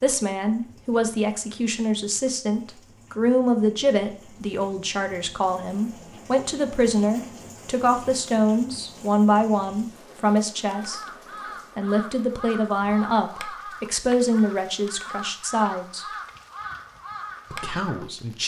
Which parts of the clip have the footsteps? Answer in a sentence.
The footsteps can't be heard in this clip.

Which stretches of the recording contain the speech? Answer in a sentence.
The speech can be heard from 0.0 to 11.0 s, from 11.8 to 16.1 s and from 17.5 to 18.4 s.